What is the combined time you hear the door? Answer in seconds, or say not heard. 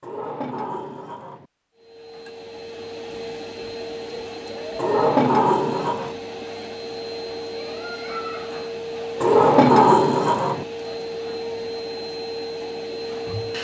4 s.